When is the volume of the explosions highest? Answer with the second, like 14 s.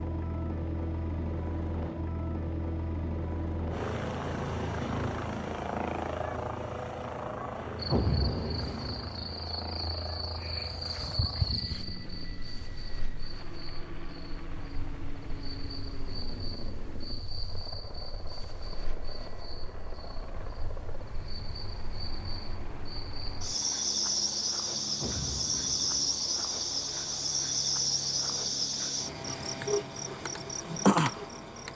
8 s.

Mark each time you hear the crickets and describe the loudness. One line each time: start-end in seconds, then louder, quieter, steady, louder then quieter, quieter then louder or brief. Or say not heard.
7.8-31.7 quieter then louder.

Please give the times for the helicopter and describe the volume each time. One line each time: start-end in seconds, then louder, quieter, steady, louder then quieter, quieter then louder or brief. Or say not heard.
0.0-31.7 quieter.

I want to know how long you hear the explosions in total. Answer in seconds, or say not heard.
2 s.